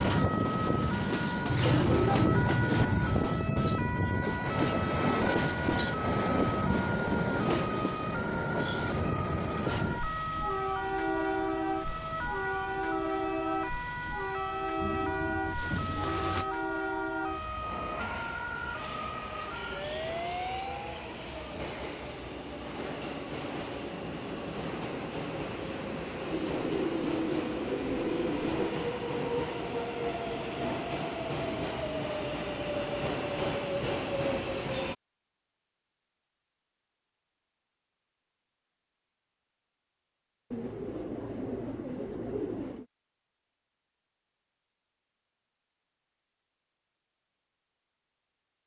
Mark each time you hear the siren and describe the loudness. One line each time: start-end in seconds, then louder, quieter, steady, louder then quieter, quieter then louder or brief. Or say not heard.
0.1-20.9 steady.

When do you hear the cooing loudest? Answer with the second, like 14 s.
2 s.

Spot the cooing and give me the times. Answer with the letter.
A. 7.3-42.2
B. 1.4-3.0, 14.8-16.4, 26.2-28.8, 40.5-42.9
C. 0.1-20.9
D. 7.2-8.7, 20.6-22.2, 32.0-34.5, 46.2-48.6
B.